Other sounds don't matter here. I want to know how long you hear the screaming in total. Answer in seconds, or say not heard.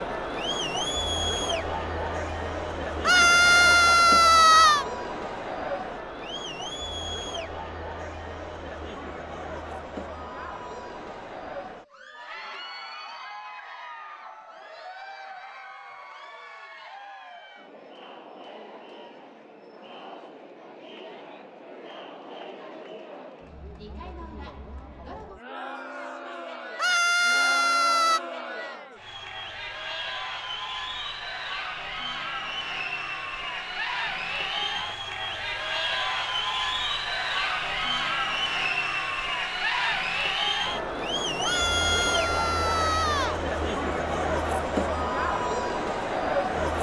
5 s.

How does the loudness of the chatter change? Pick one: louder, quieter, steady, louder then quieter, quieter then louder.
quieter then louder.